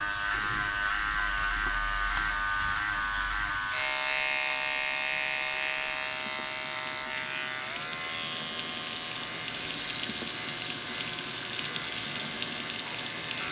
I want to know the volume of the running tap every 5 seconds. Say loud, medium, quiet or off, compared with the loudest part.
quiet, medium, loud.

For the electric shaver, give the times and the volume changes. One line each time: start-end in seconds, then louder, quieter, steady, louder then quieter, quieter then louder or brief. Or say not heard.
0.0-13.4 quieter.